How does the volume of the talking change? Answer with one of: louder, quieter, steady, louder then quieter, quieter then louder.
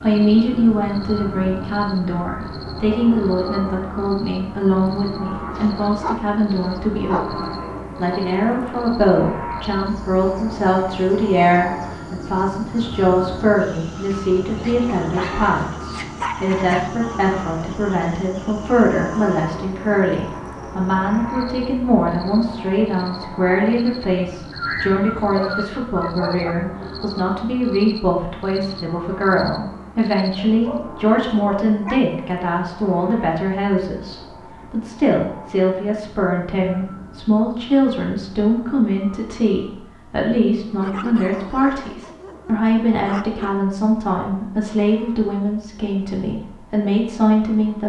steady.